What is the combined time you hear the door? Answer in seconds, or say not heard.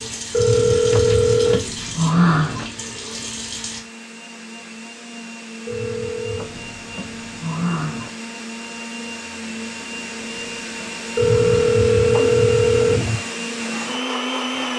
6 s.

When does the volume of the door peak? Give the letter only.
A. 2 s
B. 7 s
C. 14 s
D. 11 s
A.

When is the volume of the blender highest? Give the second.
14 s.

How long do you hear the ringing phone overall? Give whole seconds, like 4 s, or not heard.
4 s.